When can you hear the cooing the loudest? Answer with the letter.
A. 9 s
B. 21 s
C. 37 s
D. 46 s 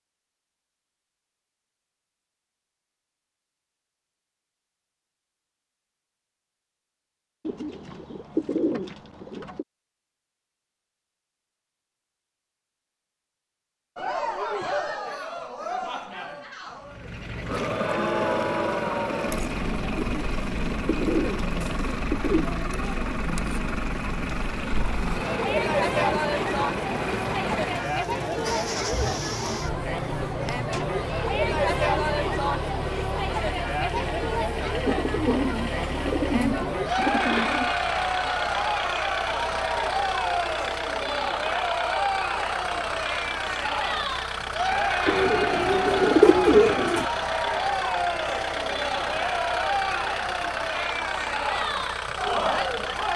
D.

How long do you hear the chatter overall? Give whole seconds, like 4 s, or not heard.
39 s.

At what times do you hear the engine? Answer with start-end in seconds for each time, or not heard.
16.8-53.1.